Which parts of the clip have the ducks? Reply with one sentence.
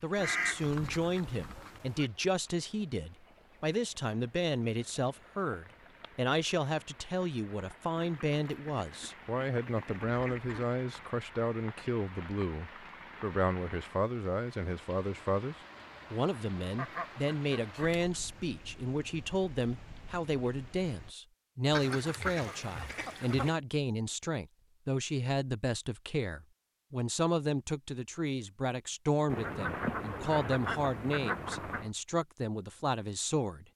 The ducks can be heard from 0.1 to 2.1 s, from 8.0 to 10.7 s, from 16.8 to 18.4 s, from 21.7 to 23.6 s and from 29.2 to 31.9 s.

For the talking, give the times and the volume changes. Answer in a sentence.
You can hear the talking from 0.0 to 33.7 s, at a steady volume.